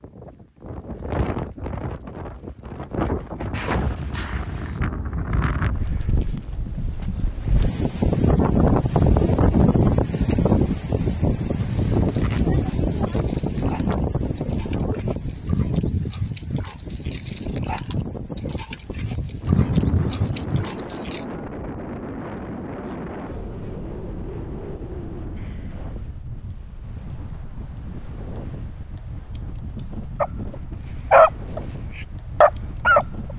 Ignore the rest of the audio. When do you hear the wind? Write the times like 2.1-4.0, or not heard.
0.0-33.3.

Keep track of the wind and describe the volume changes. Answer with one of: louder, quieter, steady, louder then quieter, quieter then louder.
louder then quieter.